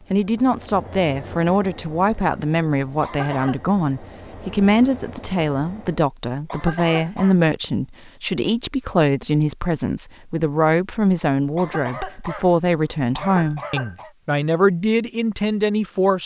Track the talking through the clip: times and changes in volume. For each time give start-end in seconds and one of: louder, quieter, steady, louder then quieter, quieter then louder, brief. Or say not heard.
0.1-16.2 steady.